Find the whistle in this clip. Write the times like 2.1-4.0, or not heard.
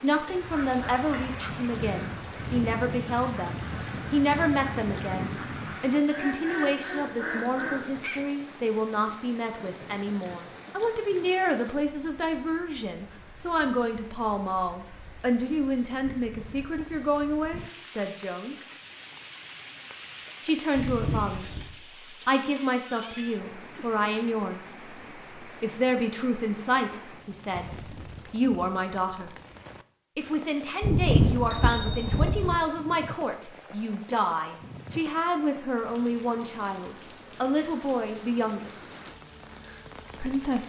not heard.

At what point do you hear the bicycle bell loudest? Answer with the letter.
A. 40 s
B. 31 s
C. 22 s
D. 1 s
B.